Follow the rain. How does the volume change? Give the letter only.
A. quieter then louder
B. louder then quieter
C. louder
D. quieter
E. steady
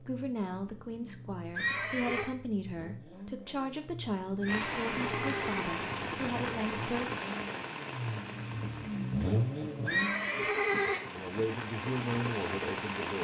A.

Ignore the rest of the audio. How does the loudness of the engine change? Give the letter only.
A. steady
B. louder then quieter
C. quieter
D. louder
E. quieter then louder
D.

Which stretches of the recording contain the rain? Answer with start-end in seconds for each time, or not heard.
4.5-13.2.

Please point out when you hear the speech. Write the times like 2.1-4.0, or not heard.
0.0-7.2, 11.1-13.2.